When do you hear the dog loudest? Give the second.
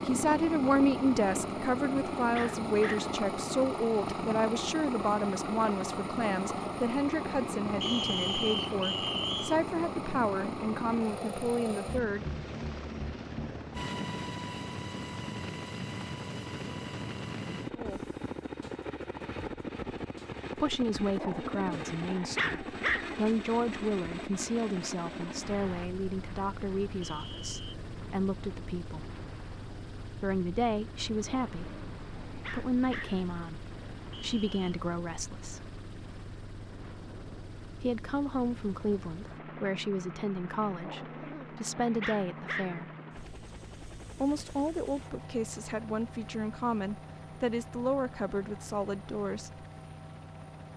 23 s.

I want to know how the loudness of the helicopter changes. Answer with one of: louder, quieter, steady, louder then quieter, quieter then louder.
quieter.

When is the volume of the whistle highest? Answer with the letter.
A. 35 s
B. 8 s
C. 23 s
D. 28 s
B.